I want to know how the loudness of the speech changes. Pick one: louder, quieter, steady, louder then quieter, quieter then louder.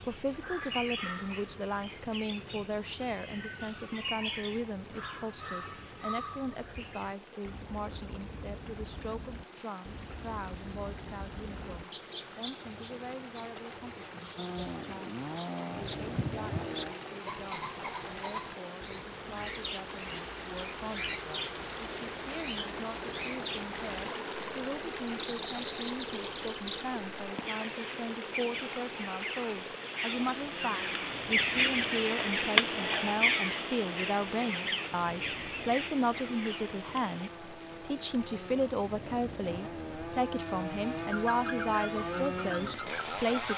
quieter then louder.